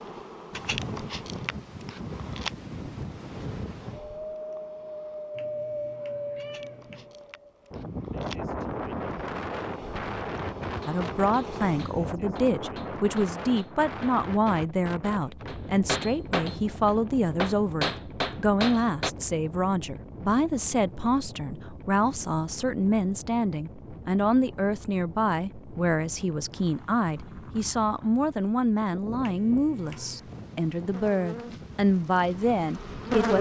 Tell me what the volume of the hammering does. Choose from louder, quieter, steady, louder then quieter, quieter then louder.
louder.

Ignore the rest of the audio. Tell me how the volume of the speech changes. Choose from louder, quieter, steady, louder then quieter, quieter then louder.
steady.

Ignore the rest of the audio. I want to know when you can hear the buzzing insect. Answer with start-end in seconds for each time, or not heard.
0.0-12.2, 29.9-33.3.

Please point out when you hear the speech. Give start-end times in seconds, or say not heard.
10.8-33.3.